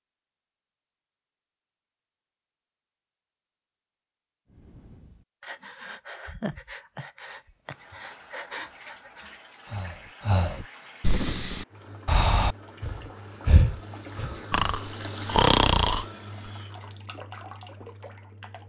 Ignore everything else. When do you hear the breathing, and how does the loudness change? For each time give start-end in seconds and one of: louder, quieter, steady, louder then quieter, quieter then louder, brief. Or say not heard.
4.5-16.1 louder.